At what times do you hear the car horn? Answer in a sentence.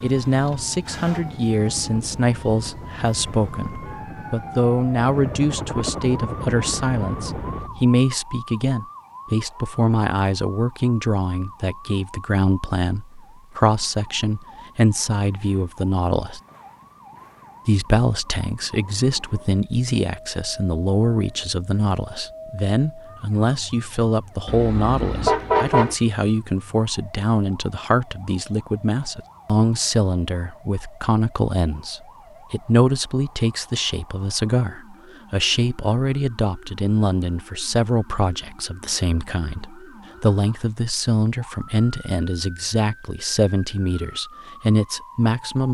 The car horn can be heard from 24.4 to 25.9 s.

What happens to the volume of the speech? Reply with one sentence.
The volume of the speech stays about the same.